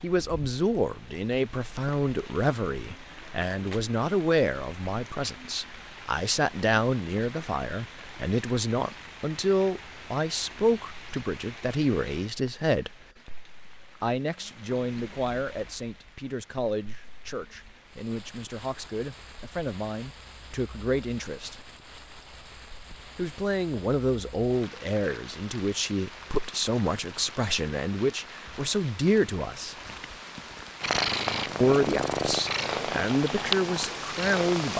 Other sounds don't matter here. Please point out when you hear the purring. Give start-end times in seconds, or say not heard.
30.8-34.7.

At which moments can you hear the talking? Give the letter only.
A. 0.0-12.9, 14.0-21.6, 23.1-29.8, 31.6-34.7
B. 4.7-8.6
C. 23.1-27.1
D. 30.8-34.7
A.